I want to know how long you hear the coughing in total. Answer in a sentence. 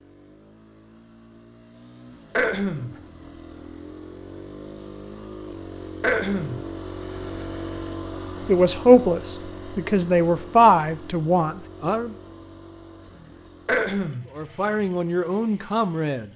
The coughing can be heard for 2 seconds in total.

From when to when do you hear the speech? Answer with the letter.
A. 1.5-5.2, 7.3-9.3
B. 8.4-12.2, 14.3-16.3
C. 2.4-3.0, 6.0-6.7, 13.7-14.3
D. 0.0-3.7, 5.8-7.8
B.